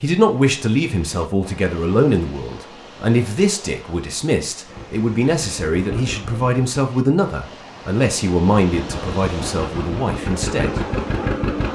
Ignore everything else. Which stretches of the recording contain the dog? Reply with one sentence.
The dog can't be heard in this clip.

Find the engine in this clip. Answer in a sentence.
The engine can be heard from 4.7 to 6.6 s and from 8.6 to 11.6 s.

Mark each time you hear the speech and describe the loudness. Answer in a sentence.
The speech can be heard from 0.0 to 10.8 s, at a steady volume.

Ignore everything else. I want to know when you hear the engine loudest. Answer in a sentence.
The volume of the engine peaks at 11 seconds.